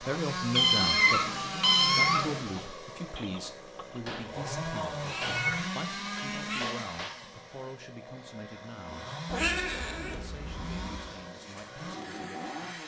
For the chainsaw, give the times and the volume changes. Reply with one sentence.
You can hear the chainsaw from 0.0 to 12.8 s, getting quieter.